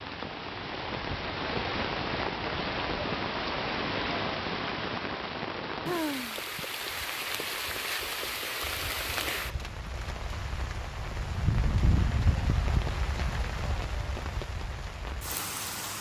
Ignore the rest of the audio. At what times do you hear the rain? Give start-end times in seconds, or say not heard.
0.0-15.9.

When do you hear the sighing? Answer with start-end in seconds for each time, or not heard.
5.4-6.7.